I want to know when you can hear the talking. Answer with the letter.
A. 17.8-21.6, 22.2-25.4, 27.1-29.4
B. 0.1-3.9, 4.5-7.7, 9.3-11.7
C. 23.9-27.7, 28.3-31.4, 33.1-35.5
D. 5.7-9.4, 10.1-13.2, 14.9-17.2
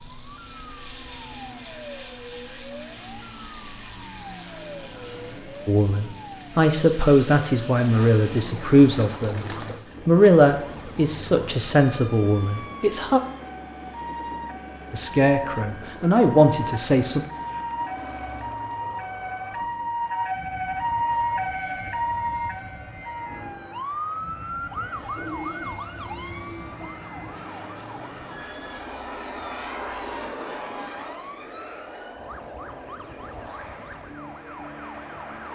D.